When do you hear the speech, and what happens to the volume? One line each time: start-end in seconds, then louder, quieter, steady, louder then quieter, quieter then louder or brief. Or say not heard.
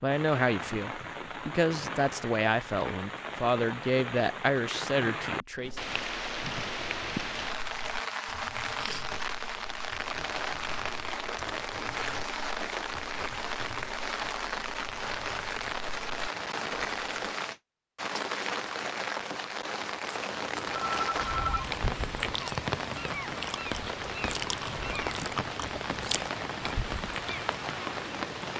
0.0-5.8 steady.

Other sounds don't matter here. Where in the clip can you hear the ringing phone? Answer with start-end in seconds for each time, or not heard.
20.6-21.8.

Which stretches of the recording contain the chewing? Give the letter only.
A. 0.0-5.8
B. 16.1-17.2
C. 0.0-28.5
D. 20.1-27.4
D.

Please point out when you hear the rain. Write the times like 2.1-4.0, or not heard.
0.0-28.5.